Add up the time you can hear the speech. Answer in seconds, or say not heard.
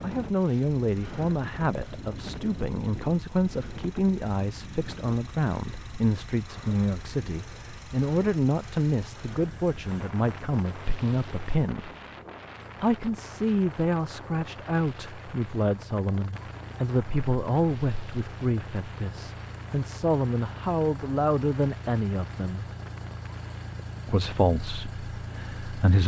24 s.